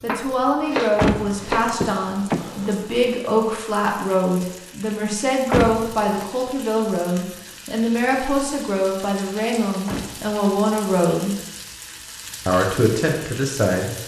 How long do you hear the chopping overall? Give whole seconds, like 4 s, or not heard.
2 s.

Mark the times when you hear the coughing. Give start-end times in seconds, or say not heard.
not heard.